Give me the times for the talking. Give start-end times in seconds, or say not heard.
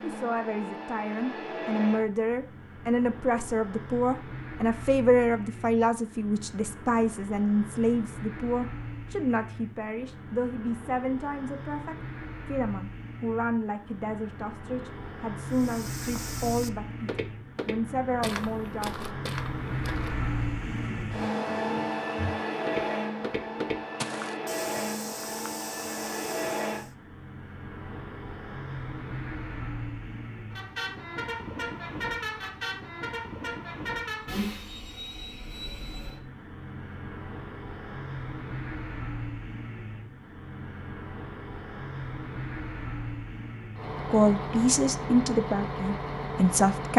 0.0-18.9, 44.1-46.9.